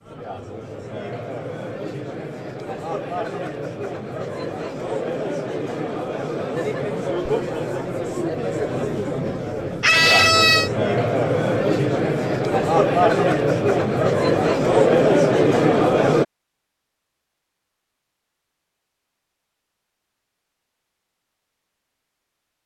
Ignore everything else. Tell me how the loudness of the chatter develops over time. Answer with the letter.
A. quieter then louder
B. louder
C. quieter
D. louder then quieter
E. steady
B.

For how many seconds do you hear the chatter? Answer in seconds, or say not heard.
16 s.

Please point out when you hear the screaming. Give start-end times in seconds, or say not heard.
9.8-10.7.